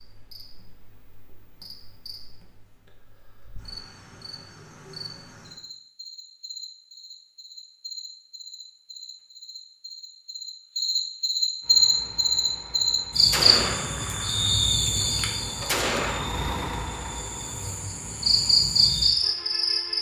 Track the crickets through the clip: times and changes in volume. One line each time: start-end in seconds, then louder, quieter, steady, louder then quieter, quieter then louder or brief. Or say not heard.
0.0-19.9 louder.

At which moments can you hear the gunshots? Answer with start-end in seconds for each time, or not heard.
13.3-16.3.